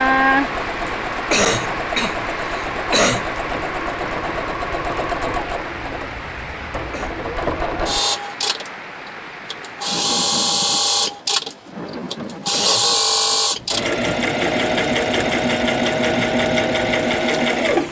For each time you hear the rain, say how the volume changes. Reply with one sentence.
You can hear the rain from 0.0 to 17.8 s, getting quieter.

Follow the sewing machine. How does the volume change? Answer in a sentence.
The loudness of the sewing machine goes up.